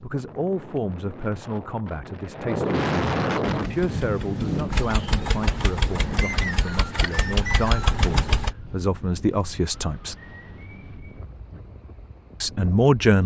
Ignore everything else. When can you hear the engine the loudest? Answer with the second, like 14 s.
8 s.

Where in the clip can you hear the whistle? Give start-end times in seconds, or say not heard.
6.2-7.8.